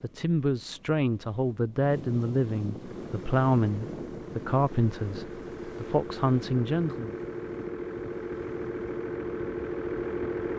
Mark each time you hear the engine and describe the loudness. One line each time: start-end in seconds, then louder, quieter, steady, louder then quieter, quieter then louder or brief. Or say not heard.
2.8-10.5 louder.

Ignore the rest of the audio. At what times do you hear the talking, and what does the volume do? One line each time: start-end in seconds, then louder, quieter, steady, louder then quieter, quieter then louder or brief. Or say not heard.
0.0-7.2 steady.